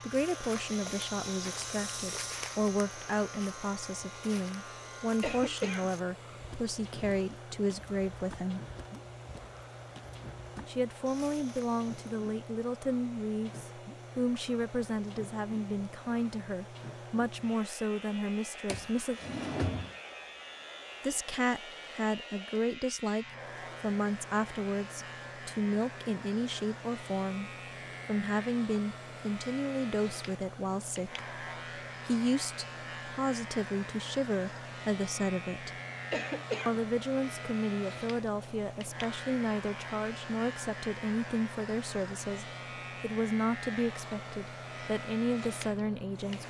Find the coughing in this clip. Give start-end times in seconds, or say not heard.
5.2-6.4, 36.1-36.9.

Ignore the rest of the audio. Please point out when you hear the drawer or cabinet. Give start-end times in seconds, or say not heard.
18.6-19.9.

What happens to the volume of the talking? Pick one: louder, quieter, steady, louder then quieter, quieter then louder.
steady.